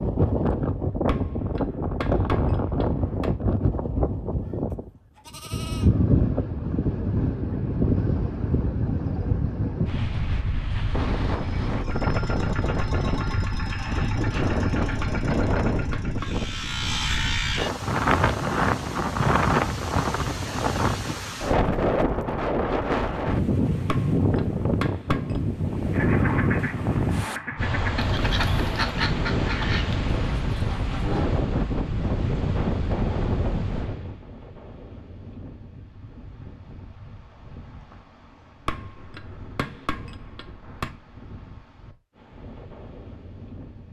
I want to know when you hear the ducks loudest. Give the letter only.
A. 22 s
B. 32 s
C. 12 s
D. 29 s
D.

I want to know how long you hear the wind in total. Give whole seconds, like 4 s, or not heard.
44 s.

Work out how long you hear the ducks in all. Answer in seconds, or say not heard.
5 s.